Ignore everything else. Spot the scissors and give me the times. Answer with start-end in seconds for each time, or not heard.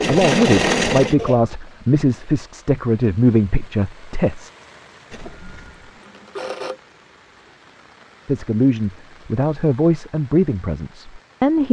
not heard.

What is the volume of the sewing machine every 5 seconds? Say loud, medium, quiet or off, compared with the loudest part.
loud, quiet, off.